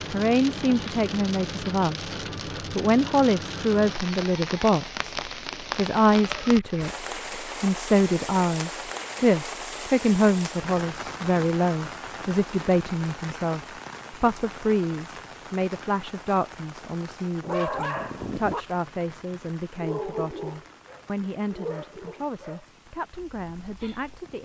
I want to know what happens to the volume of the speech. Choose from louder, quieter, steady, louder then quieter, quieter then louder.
quieter.